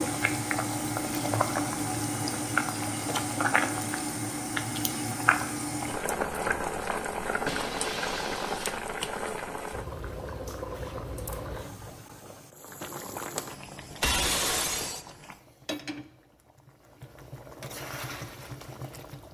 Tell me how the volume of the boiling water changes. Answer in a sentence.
The loudness of the boiling water goes down.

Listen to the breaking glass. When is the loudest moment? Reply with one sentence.
The loudest moment of the breaking glass is at 14 seconds.